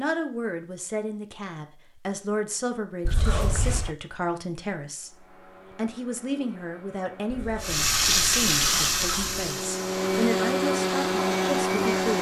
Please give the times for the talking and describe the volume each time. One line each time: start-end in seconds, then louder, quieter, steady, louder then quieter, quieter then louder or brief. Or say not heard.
0.0-12.1 steady.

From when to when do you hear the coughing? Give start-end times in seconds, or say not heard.
3.0-4.0, 7.3-9.6.